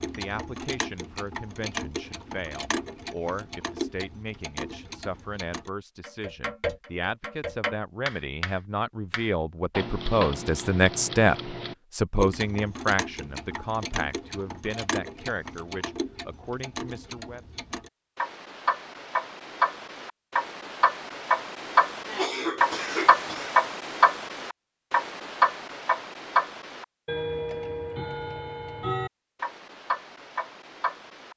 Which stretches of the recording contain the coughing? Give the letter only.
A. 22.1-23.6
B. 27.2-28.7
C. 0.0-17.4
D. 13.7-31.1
A.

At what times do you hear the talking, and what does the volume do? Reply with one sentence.
You can hear the talking from 0.0 to 17.4 s, getting louder then quieter.